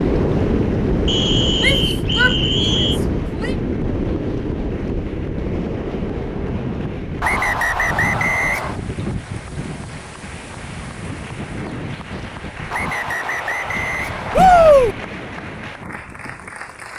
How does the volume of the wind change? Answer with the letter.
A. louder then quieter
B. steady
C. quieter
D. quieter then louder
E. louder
C.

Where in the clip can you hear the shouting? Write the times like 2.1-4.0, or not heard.
1.6-3.5, 14.3-14.9.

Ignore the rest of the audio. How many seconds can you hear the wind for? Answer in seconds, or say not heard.
17 s.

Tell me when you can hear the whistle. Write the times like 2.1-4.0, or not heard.
1.1-3.0, 7.2-8.8, 12.7-14.7.